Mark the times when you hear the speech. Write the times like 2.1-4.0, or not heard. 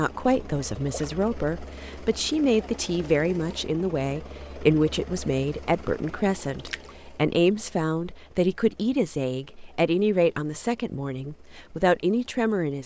0.0-12.8.